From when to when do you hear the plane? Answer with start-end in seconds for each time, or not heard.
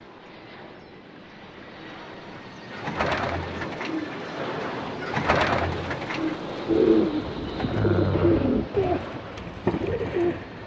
0.0-10.6.